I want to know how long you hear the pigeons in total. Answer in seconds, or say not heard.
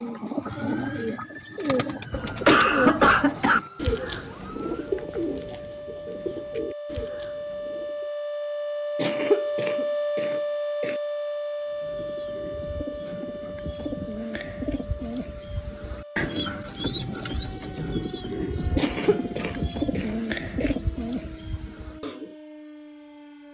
19 s.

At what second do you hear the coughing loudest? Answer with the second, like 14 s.
3 s.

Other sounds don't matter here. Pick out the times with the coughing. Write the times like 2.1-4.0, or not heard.
2.1-3.6, 8.9-10.9, 18.8-20.8.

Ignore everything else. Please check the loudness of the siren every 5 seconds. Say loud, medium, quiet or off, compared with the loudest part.
quiet, loud, loud, quiet, quiet.